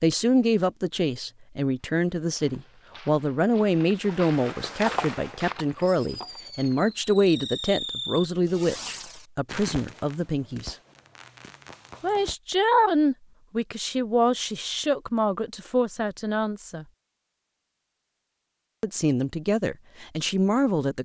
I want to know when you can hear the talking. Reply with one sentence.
You can hear the talking from 0.0 to 10.8 s, from 12.0 to 16.9 s and from 18.8 to 21.0 s.